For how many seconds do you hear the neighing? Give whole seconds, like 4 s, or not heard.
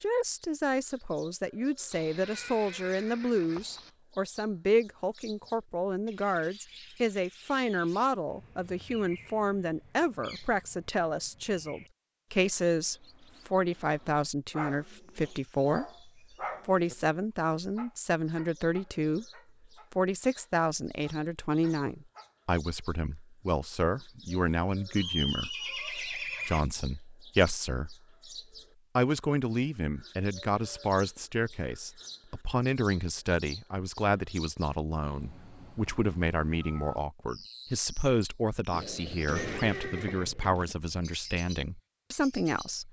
6 s.